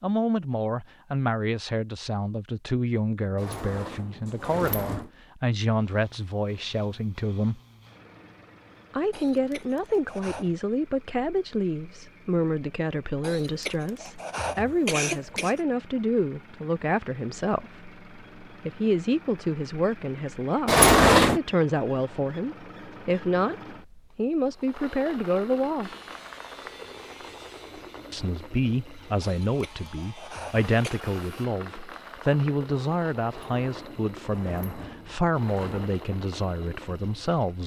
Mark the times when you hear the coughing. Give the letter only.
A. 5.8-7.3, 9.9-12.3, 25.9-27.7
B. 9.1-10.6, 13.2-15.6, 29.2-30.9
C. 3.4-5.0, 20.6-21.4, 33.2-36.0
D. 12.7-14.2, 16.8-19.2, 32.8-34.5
B.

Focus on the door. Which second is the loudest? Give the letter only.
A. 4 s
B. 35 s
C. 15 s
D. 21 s
D.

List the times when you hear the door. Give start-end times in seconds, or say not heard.
3.4-5.0, 20.6-21.4, 33.2-36.0.